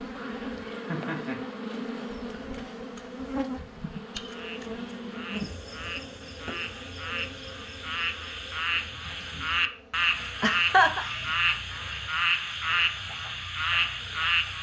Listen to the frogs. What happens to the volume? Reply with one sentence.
The loudness of the frogs goes up.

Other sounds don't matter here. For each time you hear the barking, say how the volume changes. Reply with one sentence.
You can't hear the barking here.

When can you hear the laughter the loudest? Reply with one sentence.
The loudest moment of the laughter is at 11 seconds.